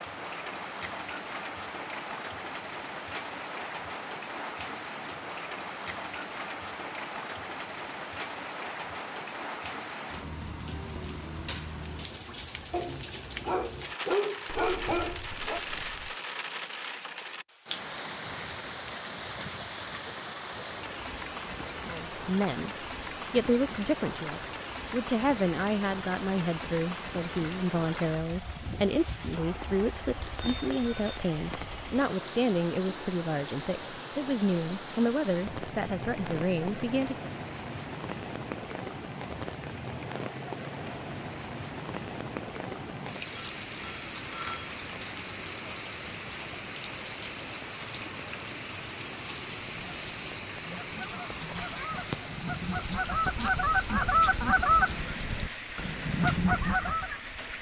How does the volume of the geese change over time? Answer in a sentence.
The volume of the geese goes up.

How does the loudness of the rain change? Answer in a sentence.
The volume of the rain stays about the same.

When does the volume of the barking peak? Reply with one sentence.
The volume of the barking peaks at 14 seconds.